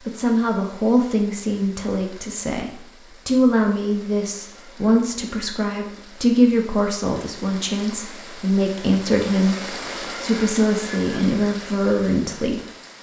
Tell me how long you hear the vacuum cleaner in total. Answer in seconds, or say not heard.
not heard.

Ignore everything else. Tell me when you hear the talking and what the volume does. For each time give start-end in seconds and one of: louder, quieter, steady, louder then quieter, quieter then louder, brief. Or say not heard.
0.0-12.7 steady.